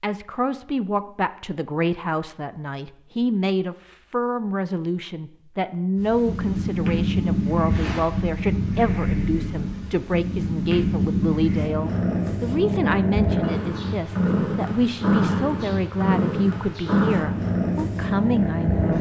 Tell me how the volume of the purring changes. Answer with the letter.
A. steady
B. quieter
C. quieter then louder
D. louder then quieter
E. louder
A.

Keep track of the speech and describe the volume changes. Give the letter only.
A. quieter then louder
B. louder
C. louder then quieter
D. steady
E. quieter
D.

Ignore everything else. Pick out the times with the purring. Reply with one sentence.
You can hear the purring from 6.0 to 18.9 s.